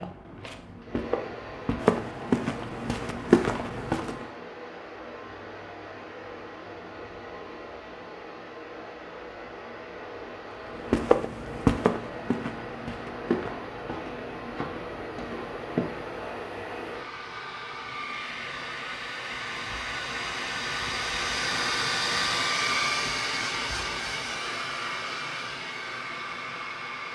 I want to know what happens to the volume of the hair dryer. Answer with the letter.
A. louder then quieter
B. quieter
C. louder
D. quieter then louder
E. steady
C.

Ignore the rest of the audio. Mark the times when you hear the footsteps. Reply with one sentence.
The footsteps can be heard from 0.0 to 4.2 s and from 10.8 to 16.2 s.